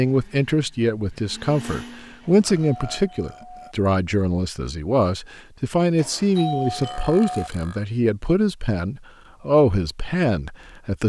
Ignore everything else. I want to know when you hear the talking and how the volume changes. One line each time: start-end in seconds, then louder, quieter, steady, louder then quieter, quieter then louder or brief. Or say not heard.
0.0-11.0 steady.